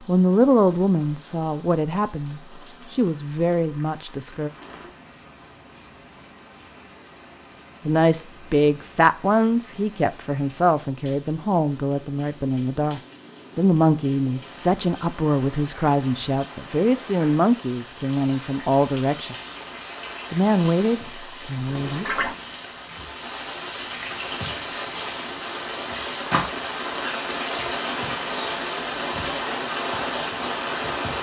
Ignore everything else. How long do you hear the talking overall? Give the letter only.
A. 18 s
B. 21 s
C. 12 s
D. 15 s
A.